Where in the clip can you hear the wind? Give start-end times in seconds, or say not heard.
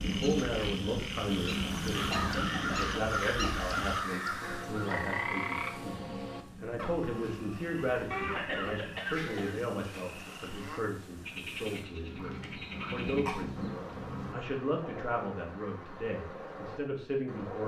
0.0-14.3.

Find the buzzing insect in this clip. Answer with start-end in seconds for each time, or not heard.
not heard.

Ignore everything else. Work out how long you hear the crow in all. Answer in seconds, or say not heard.
4 s.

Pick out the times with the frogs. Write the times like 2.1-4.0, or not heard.
0.0-17.6.